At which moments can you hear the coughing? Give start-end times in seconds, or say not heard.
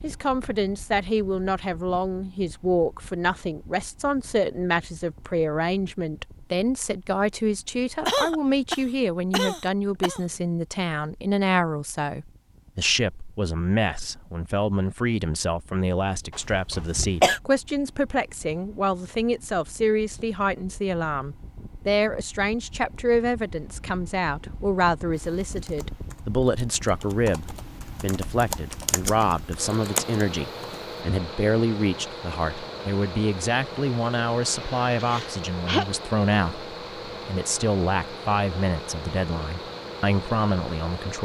8.1-10.2, 16.5-17.4, 34.5-35.9.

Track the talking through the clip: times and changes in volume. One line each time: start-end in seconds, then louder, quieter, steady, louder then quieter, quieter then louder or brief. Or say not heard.
0.0-41.1 steady.